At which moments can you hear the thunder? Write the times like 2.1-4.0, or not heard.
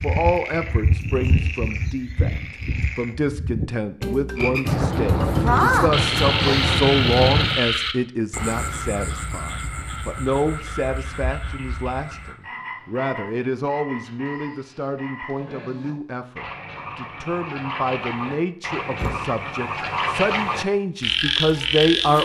4.7-7.6.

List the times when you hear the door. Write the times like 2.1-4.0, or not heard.
18.9-19.4.